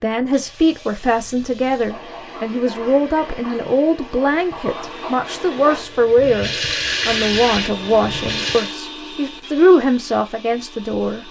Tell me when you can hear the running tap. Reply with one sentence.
The running tap can be heard from 0.2 to 8.8 s.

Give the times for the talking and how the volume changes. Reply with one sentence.
The talking can be heard from 0.0 to 11.2 s, at a steady volume.